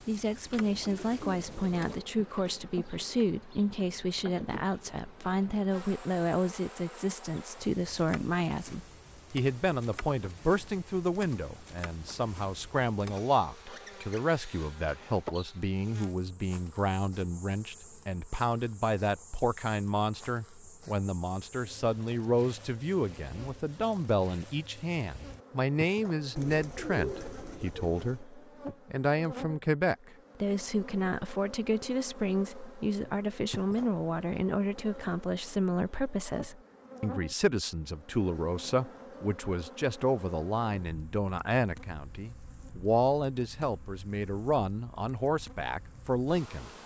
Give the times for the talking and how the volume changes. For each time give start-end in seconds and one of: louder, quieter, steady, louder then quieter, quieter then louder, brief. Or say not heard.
0.1-46.7 steady.